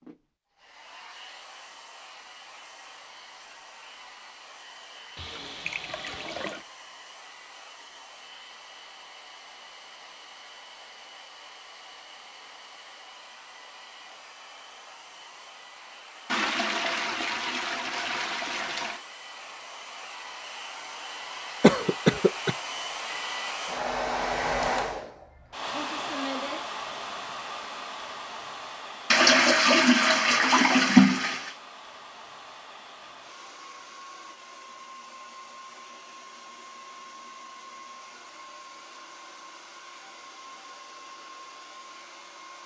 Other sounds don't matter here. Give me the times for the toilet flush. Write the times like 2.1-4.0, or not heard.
5.2-6.7, 16.2-19.0, 29.1-31.5.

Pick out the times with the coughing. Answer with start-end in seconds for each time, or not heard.
21.6-22.6.